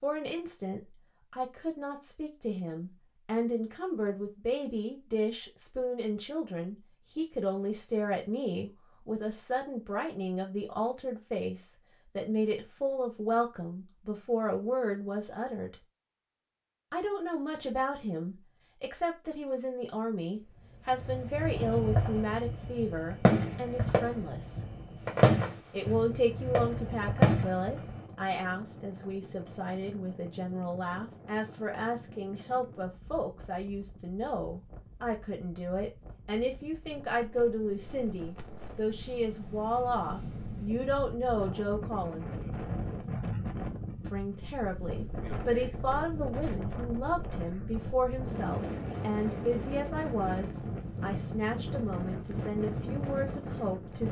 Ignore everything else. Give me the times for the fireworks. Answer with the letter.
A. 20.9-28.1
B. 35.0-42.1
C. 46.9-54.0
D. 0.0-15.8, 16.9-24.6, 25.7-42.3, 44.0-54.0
A.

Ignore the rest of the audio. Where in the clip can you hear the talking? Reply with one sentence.
The talking can be heard from 0.0 to 15.8 s, from 16.9 to 24.6 s, from 25.7 to 42.3 s and from 44.0 to 54.0 s.